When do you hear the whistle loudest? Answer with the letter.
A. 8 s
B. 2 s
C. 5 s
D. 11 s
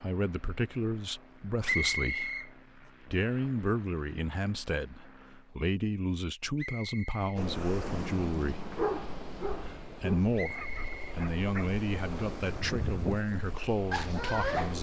B.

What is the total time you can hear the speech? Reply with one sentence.
The speech can be heard for 14 seconds in total.